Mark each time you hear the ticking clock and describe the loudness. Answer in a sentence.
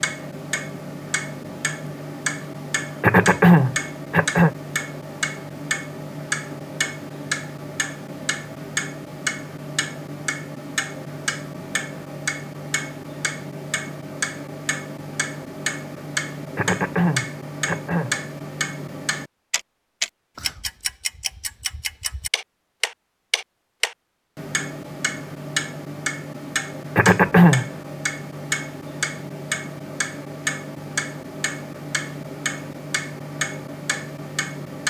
The ticking clock can be heard from 0.0 to 34.8 s, at a steady volume.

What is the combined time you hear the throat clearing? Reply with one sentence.
The throat clearing can be heard for 4 seconds in total.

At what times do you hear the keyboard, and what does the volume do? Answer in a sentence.
The keyboard can't be heard in this clip.